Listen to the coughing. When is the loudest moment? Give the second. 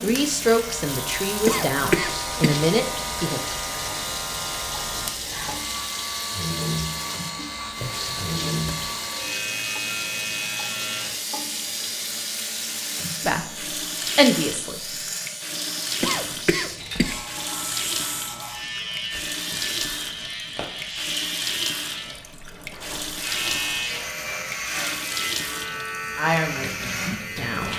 2 s.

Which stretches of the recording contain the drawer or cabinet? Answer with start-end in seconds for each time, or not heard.
7.7-8.9.